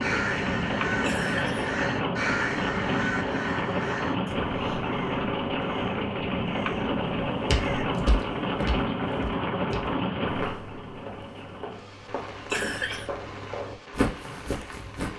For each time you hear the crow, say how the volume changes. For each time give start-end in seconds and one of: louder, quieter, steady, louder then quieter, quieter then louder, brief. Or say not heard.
0.0-7.8 quieter.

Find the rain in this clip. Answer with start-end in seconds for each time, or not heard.
0.0-15.1.